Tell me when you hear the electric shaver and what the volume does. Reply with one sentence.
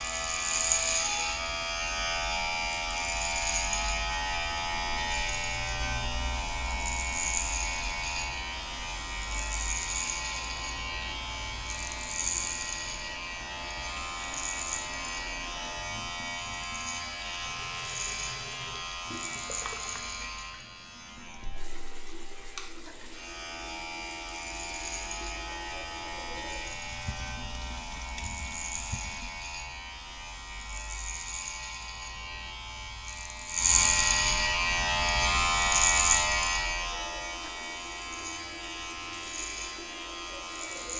You can hear the electric shaver from 0.0 to 40.9 s, getting quieter then louder.